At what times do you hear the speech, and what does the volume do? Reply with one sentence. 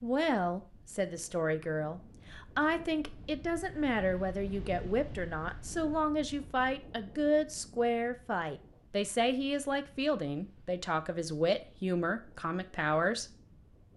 You can hear the speech from 0.0 to 13.2 s, at a steady volume.